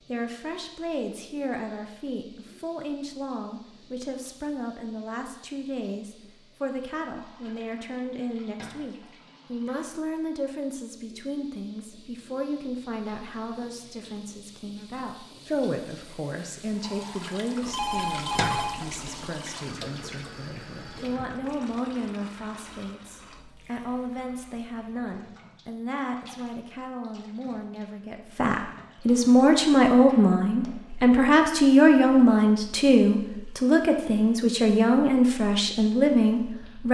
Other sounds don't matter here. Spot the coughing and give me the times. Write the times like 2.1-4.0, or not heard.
not heard.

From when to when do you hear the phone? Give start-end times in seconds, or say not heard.
17.6-19.3.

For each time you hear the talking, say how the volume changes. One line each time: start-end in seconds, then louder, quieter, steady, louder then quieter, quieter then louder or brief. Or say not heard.
0.1-36.8 louder.